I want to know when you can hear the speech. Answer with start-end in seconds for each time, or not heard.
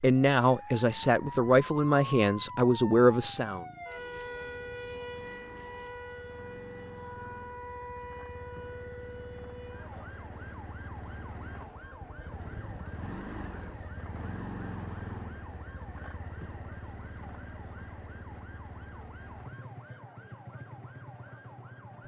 0.0-3.6.